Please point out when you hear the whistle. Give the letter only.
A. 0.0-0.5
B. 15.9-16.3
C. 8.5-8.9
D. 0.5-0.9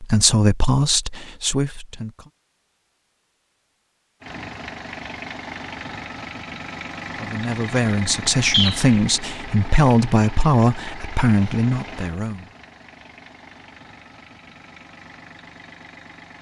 C.